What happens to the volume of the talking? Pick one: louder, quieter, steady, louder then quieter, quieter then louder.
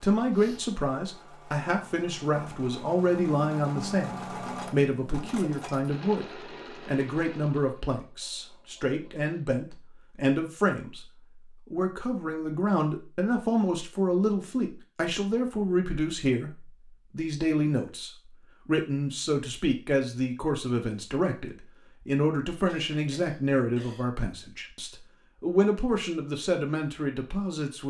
steady.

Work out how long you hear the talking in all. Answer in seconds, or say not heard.
28 s.